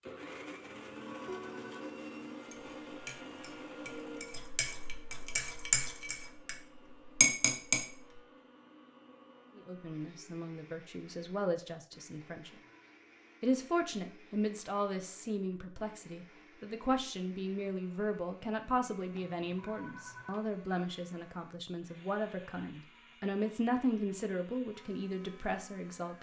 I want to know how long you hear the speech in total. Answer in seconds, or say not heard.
16 s.